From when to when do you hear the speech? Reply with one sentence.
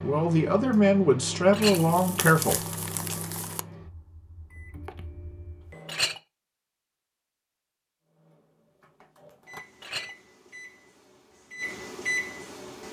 The speech can be heard from 0.0 to 2.8 s.